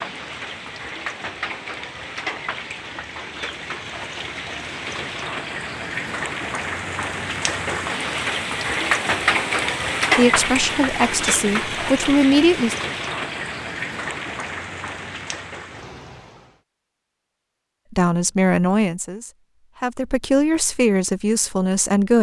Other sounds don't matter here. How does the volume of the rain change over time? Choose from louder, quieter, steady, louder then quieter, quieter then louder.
louder then quieter.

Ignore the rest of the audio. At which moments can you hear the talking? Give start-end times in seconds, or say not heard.
10.2-12.8, 17.9-22.1.